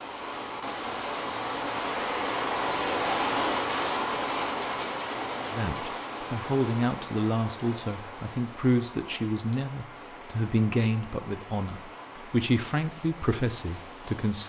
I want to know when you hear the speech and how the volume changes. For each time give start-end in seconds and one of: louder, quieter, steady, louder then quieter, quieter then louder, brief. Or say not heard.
5.5-14.4 steady.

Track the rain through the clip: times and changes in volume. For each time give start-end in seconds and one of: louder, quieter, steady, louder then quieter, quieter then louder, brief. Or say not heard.
0.0-14.4 quieter.